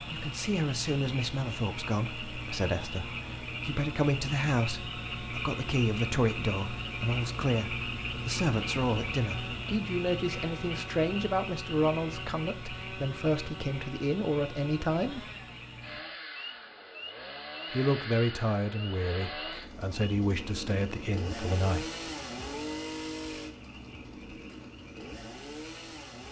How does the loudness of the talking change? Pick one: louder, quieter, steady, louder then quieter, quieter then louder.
steady.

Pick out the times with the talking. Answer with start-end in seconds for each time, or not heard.
0.1-15.2, 17.7-21.9.